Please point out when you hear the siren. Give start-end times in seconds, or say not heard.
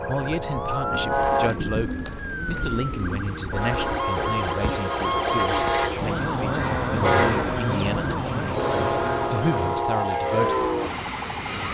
0.0-11.6.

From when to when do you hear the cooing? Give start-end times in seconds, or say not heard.
0.8-9.3.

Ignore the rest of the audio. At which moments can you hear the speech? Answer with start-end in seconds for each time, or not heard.
0.1-10.7.